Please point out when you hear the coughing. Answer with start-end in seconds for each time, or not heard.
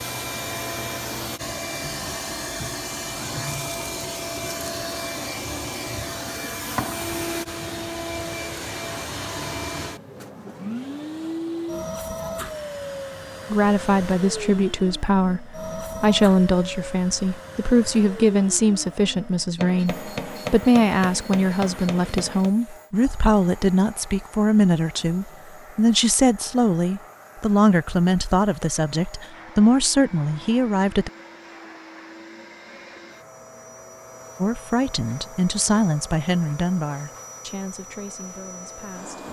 not heard.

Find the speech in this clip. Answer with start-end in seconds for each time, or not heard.
13.5-31.1, 34.4-39.2.